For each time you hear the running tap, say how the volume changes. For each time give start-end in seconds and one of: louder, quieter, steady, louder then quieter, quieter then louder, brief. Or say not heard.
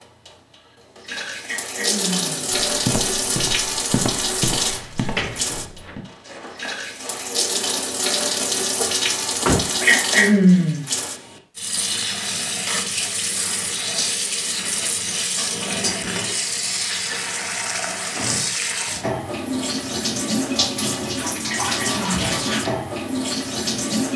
0.0-24.1 steady.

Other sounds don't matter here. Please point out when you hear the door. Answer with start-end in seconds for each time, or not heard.
4.8-6.0, 8.8-9.7, 17.0-18.6.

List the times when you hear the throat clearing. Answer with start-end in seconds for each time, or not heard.
1.4-2.5, 9.8-10.8, 21.4-22.2.